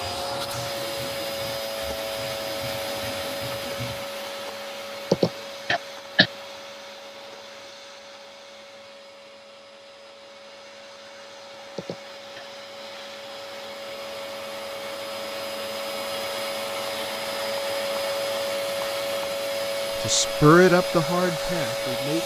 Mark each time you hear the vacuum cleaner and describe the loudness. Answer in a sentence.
The vacuum cleaner can be heard from 0.0 to 22.2 s, getting quieter then louder.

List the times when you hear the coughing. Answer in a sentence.
You can hear the coughing from 5.1 to 6.3 s and from 11.8 to 12.4 s.